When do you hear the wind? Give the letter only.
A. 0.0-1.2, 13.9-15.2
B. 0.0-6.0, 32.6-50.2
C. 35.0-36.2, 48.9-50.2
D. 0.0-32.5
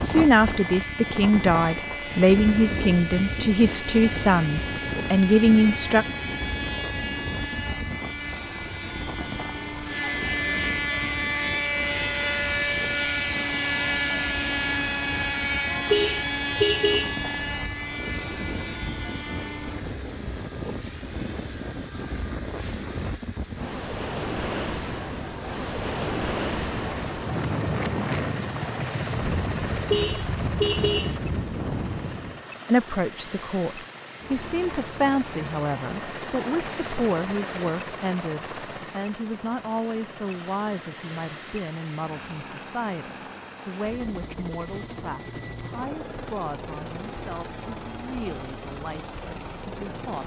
D.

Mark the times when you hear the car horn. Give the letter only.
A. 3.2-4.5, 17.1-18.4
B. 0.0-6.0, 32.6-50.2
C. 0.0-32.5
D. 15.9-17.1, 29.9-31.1
D.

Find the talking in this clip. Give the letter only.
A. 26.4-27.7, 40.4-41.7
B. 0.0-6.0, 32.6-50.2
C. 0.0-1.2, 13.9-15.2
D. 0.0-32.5
B.